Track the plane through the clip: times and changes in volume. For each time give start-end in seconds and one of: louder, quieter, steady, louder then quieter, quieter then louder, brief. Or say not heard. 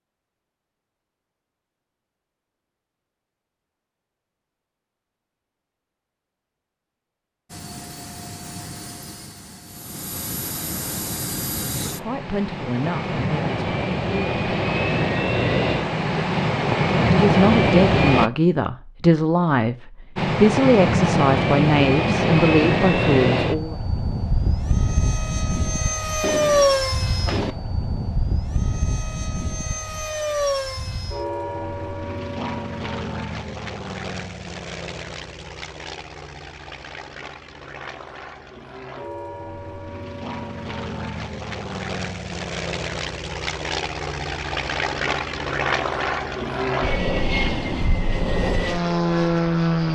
7.5-18.3 louder
20.1-49.9 quieter then louder.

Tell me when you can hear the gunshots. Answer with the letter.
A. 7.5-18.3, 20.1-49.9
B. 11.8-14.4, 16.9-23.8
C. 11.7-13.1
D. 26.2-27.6
D.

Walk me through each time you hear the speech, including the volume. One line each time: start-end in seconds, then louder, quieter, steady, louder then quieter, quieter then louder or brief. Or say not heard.
11.8-14.4 brief
16.9-23.8 steady.